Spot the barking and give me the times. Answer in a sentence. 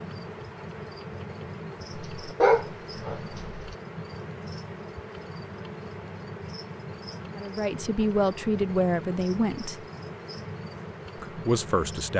The barking can be heard from 1.9 to 3.8 s.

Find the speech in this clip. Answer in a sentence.
You can hear the speech from 7.3 to 9.8 s and from 11.2 to 12.1 s.